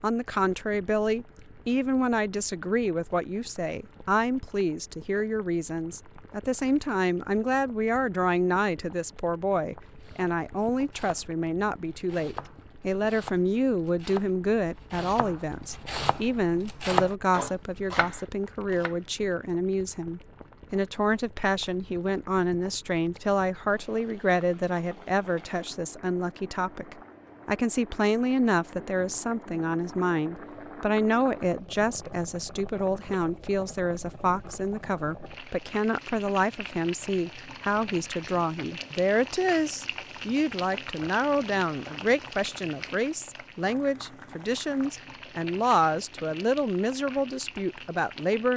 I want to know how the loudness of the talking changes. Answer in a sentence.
The volume of the talking stays about the same.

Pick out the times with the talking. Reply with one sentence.
You can hear the talking from 0.0 to 48.5 s.